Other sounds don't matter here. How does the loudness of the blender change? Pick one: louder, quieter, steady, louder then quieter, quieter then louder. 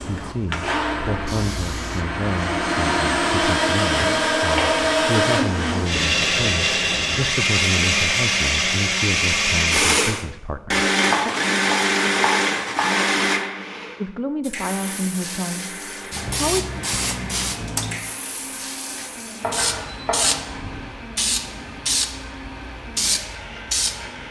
quieter.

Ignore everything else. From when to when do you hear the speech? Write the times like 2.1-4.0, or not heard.
0.0-11.3, 14.0-16.7.